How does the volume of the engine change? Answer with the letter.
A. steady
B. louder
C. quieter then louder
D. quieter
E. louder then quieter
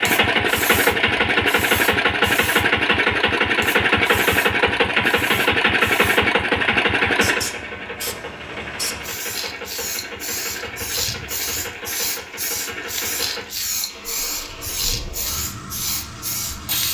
D.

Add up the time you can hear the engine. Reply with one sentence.
You can hear the engine for 17 seconds altogether.